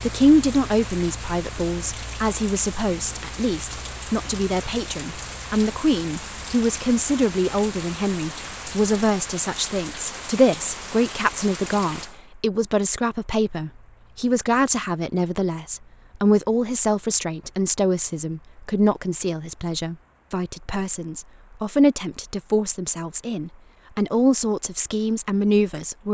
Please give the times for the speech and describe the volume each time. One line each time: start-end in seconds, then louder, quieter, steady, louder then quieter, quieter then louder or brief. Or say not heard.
0.0-26.0 steady.